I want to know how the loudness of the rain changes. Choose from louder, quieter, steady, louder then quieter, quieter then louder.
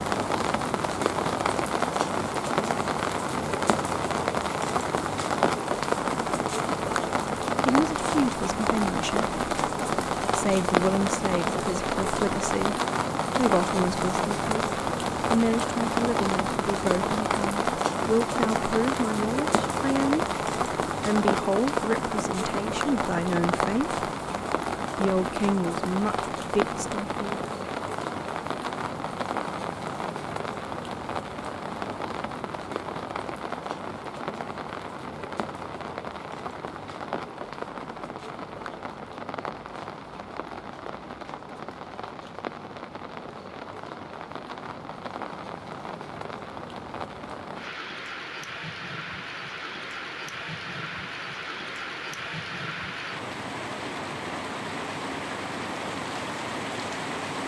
quieter.